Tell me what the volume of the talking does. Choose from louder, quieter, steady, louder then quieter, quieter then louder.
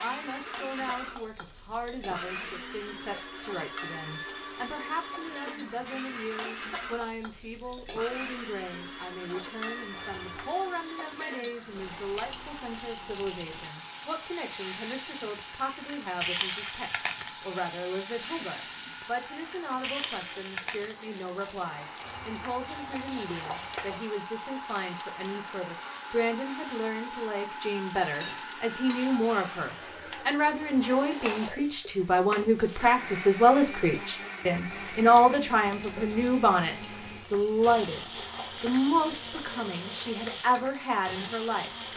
louder.